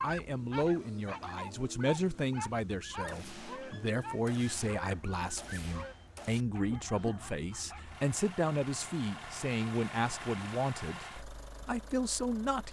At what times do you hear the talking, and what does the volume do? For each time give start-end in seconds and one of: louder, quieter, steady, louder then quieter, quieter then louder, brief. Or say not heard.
0.0-12.6 steady.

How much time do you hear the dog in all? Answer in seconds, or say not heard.
8 s.